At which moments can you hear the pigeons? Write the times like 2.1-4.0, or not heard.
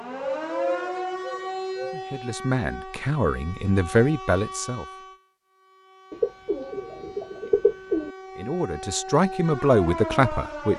0.5-1.9, 6.1-8.1.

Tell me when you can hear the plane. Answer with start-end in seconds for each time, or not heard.
not heard.